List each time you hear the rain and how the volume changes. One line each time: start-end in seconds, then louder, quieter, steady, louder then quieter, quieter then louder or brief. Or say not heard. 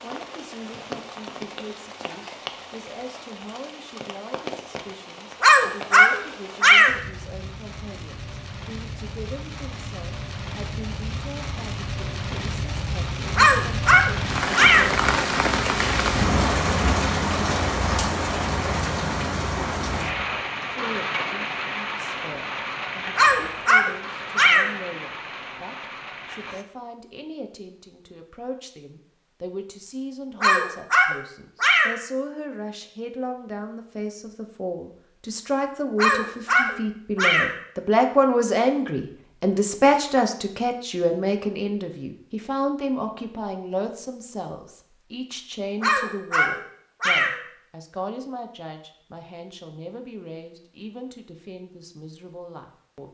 0.0-26.6 louder then quieter.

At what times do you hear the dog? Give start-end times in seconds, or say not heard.
5.4-7.0, 13.3-14.9, 23.1-24.7, 30.4-31.9, 36.0-37.5, 45.8-47.4.